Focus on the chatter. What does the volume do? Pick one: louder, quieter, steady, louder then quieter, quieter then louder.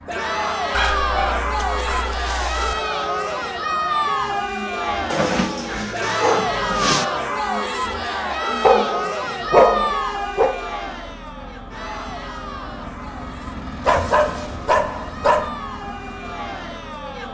quieter.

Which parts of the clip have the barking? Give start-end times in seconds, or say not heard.
0.7-2.8, 5.1-7.0, 8.6-10.6, 13.8-15.5.